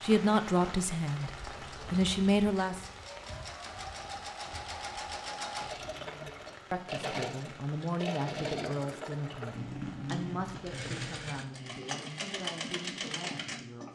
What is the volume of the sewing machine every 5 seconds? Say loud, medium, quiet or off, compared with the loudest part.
medium, loud, loud.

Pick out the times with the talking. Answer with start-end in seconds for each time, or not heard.
0.0-2.8, 6.0-13.9.